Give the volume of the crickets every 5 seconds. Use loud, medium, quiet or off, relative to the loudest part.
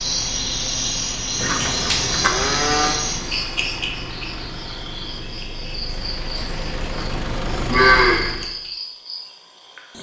loud, medium.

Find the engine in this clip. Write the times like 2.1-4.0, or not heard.
0.0-8.6.